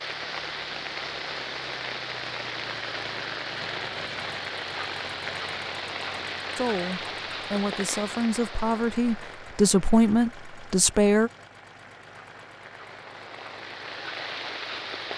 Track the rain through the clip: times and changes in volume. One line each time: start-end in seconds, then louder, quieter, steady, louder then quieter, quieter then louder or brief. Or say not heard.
0.0-15.1 quieter then louder.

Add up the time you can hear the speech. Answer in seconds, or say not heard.
5 s.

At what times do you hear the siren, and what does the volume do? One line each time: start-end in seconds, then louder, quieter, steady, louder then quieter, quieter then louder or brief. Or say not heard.
not heard.